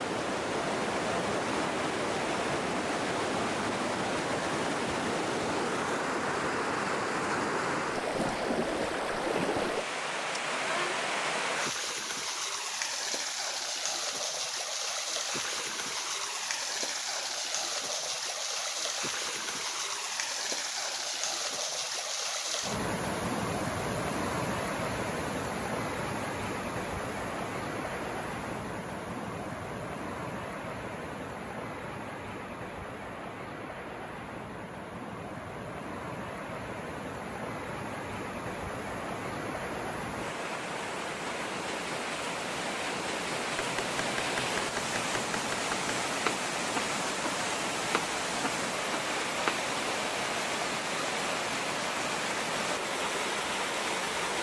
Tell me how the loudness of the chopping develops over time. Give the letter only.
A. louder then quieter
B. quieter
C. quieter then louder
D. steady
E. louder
A.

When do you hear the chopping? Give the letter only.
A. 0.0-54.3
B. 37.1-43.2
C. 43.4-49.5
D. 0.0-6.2
C.